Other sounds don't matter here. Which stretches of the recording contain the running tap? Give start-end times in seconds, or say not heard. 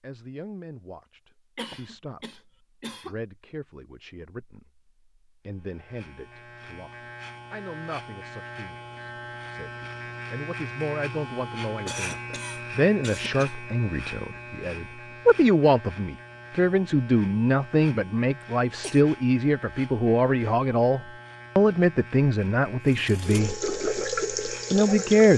22.9-25.3.